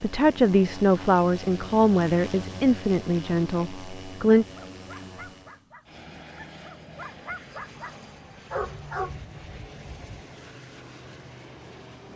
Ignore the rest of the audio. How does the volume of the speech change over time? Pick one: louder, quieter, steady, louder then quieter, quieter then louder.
quieter.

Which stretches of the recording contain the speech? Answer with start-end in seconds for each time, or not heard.
0.0-4.5.